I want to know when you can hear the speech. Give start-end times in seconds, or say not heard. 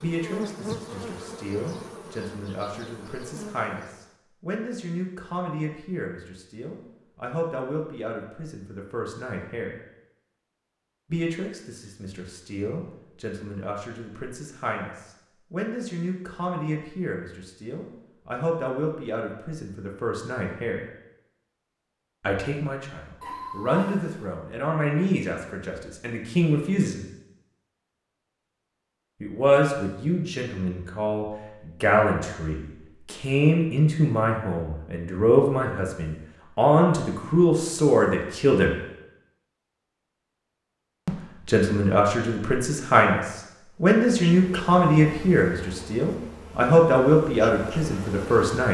0.0-9.8, 11.1-20.8, 22.2-27.0, 29.2-38.8, 41.0-48.7.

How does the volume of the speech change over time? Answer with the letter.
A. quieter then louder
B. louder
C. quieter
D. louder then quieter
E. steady
B.